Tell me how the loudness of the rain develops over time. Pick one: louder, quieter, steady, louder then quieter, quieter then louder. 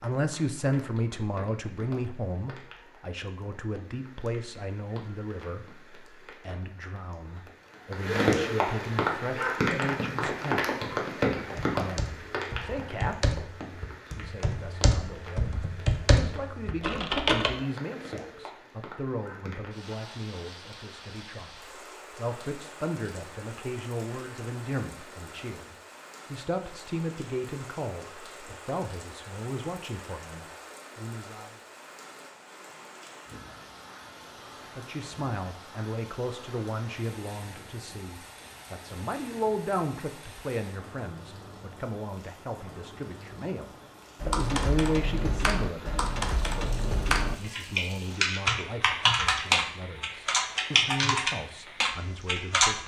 quieter.